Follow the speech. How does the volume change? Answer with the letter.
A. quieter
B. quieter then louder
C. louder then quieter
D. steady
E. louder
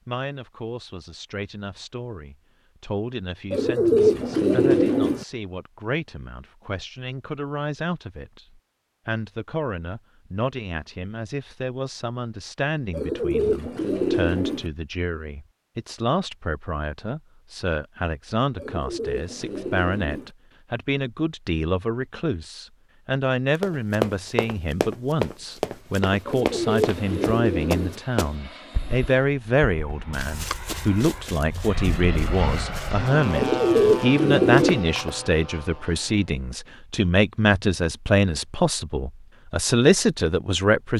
E.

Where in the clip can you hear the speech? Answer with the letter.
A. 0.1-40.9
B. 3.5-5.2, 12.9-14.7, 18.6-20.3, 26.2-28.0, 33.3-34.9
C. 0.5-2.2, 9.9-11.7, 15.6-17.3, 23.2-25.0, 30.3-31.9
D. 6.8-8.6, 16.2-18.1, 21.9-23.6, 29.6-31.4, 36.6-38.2
A.